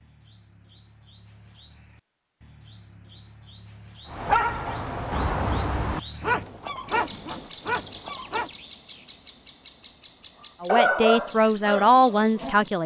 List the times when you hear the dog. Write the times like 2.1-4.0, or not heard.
4.1-8.5, 10.7-12.7.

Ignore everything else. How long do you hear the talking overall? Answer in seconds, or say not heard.
2 s.